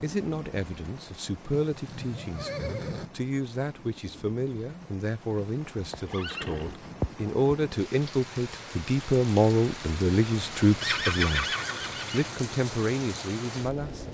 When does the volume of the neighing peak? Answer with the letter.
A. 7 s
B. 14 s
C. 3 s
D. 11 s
D.